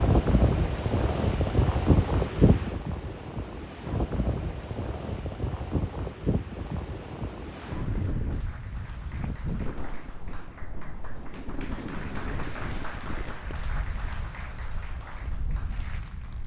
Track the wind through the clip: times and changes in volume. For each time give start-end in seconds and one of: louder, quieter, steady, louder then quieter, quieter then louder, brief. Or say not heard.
0.0-16.4 quieter.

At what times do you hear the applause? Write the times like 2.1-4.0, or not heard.
7.5-16.4.